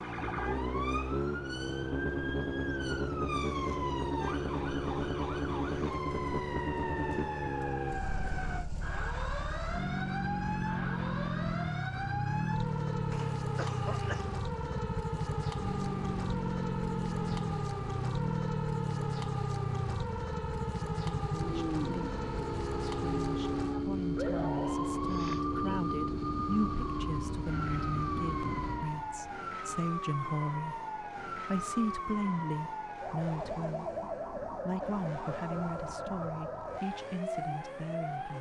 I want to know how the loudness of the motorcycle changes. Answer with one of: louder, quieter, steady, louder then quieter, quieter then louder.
quieter.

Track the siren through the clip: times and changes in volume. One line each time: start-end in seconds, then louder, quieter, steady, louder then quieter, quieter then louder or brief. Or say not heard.
0.0-38.3 steady.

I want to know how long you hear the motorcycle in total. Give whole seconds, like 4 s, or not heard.
38 s.